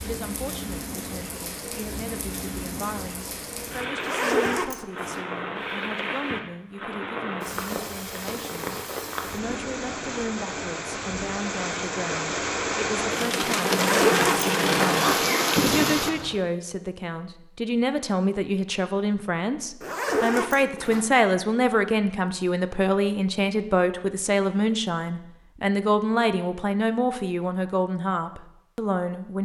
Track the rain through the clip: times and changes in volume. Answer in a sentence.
The rain can be heard from 0.0 to 16.4 s, getting louder.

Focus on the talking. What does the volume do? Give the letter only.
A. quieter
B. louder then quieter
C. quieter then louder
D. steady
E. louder
E.